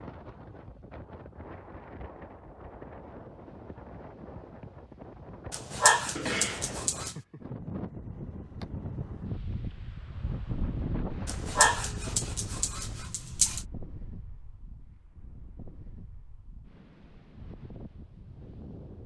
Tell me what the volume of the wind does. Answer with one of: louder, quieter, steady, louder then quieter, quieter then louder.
louder then quieter.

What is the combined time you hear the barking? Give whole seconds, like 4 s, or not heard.
4 s.